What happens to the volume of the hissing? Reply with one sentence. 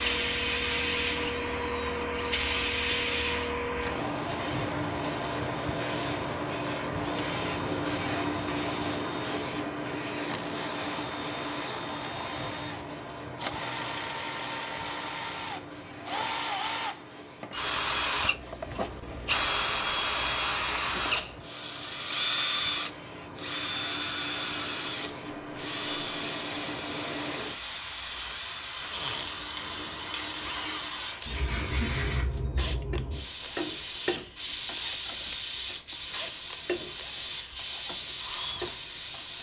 The volume of the hissing goes down, then up.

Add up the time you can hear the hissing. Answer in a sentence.
You can hear the hissing for 39 seconds altogether.